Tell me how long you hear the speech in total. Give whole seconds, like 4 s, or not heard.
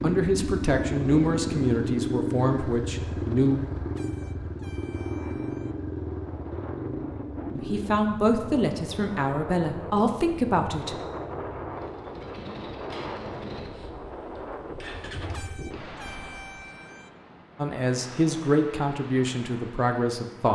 10 s.